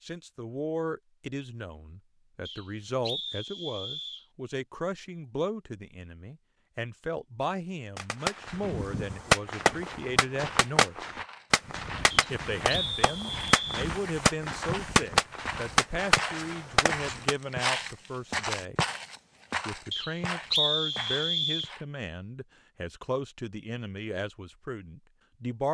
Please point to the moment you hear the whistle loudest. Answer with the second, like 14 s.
21 s.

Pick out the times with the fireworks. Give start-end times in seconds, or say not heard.
8.0-17.4.